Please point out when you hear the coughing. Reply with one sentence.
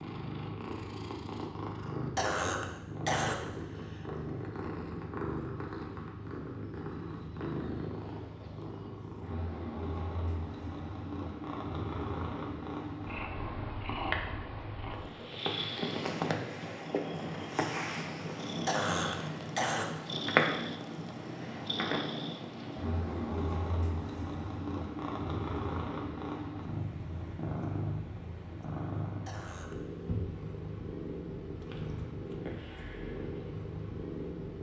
The coughing can be heard from 2.1 to 4.2 s, from 18.6 to 19.9 s and from 29.2 to 29.8 s.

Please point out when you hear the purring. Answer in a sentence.
The purring can be heard from 0.0 to 34.5 s.